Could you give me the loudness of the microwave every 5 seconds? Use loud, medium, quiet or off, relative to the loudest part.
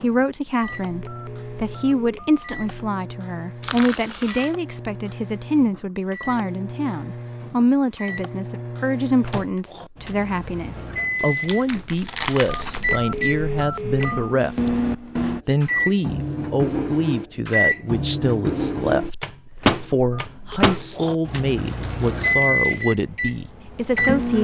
quiet, medium, loud, loud, loud.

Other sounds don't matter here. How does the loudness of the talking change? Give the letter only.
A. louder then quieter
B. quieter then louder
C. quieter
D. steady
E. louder
D.